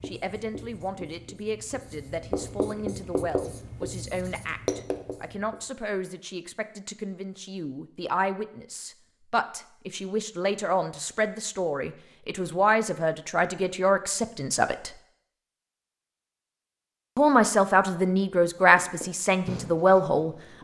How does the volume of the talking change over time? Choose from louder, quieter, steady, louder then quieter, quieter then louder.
louder.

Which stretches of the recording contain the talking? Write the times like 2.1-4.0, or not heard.
0.0-14.9, 17.1-20.6.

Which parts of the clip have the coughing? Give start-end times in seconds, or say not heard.
not heard.